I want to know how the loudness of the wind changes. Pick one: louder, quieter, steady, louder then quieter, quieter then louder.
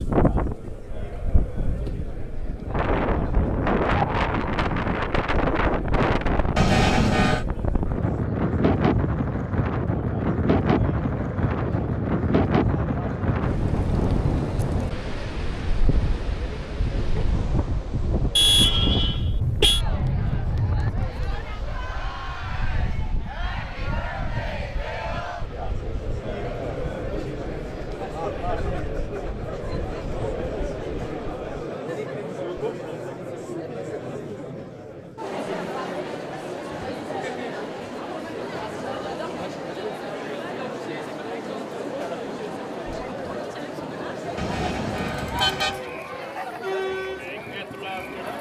quieter.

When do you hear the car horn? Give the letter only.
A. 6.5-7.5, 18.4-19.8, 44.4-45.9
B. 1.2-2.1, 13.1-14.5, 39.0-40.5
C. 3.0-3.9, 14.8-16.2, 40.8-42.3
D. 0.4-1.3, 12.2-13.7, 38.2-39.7
A.